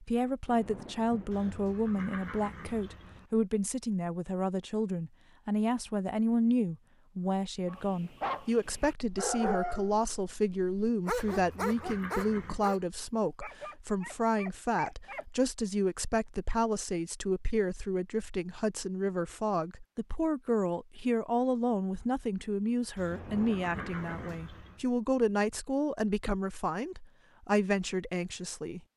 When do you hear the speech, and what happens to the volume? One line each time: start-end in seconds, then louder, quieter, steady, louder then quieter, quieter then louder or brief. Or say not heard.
0.0-28.8 steady.